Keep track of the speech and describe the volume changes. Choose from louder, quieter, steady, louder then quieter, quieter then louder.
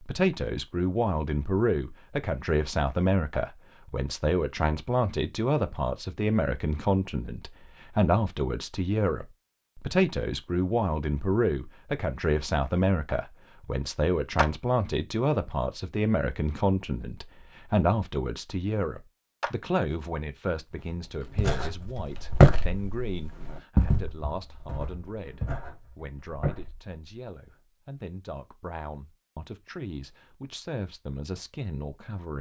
quieter.